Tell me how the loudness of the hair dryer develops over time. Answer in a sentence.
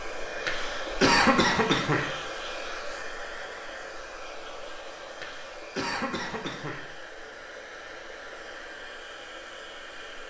The volume of the hair dryer goes down.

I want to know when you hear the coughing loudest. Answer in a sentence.
The loudest moment of the coughing is at 1 second.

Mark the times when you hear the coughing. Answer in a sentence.
The coughing can be heard from 0.5 to 2.1 s and from 5.2 to 6.9 s.